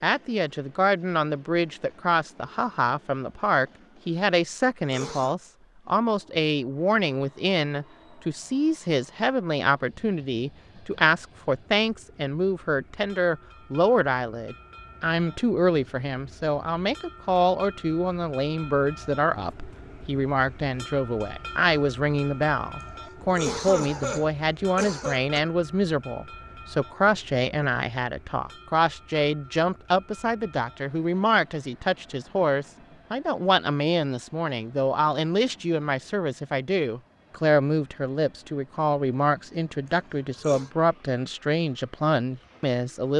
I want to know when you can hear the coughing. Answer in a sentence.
You can hear the coughing from 4.8 to 5.3 s, from 23.2 to 25.4 s and from 40.3 to 40.7 s.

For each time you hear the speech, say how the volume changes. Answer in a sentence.
The speech can be heard from 0.0 to 43.1 s, at a steady volume.